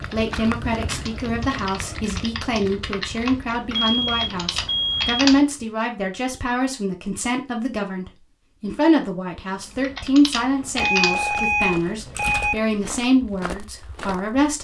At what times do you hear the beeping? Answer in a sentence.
The beeping can be heard from 3.7 to 5.2 s and from 10.8 to 12.6 s.